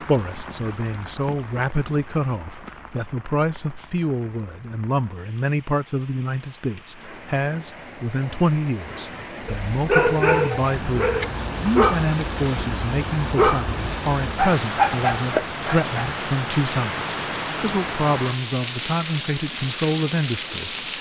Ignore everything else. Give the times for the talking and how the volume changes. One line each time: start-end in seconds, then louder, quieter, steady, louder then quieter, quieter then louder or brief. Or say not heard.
0.0-20.8 steady.